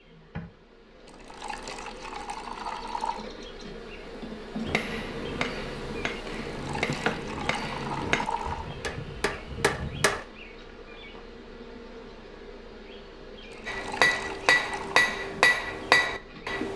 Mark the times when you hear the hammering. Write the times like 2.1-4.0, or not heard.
4.7-10.2, 13.7-16.7.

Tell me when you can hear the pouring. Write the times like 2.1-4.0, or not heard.
1.1-3.2, 6.5-8.7, 13.5-15.2.